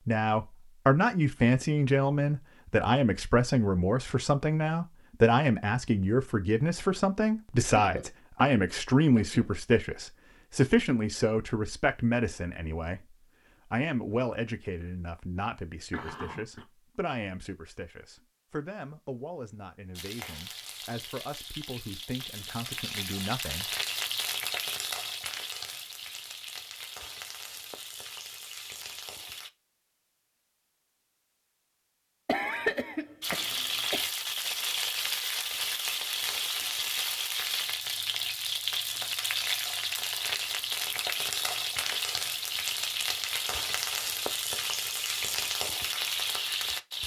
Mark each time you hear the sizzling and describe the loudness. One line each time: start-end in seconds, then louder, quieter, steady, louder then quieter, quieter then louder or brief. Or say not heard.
19.9-29.5 louder then quieter
33.2-47.0 steady.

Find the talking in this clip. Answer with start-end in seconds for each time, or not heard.
0.1-23.8.